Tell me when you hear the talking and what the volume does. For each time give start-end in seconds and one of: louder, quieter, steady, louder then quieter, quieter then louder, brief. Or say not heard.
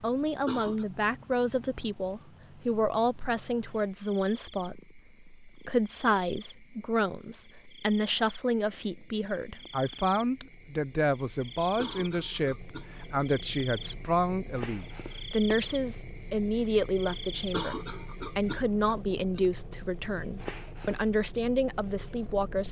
0.0-22.6 steady.